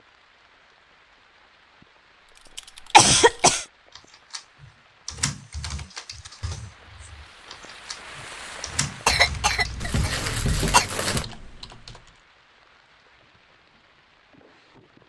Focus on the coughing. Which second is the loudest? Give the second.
3 s.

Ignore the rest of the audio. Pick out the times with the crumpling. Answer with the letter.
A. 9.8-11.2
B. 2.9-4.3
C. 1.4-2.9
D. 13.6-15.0
A.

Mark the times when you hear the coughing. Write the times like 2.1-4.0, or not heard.
2.9-3.6, 9.1-10.8.